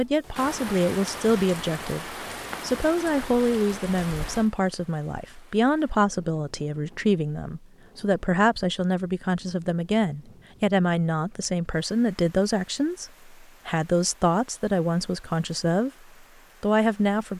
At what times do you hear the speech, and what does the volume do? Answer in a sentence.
The speech can be heard from 0.0 to 15.9 s, at a steady volume; and briefly from 16.6 to 17.3 s.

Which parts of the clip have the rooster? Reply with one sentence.
You can't hear the rooster here.